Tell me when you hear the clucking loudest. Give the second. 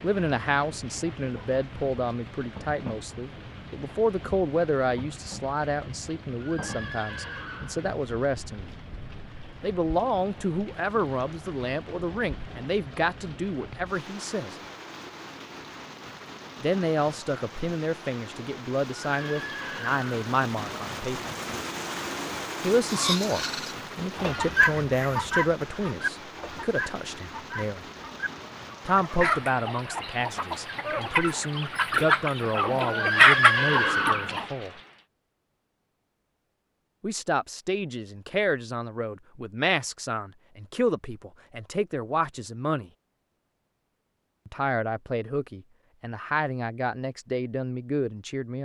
33 s.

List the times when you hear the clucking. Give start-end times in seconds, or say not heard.
22.9-34.5.